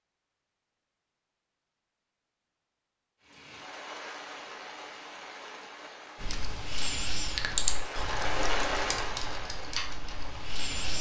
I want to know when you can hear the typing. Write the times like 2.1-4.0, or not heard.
6.2-10.9.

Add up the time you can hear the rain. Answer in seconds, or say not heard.
8 s.